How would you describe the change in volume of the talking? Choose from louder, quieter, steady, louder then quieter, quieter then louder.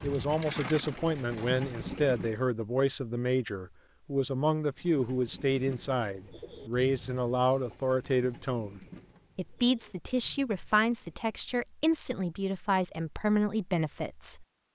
steady.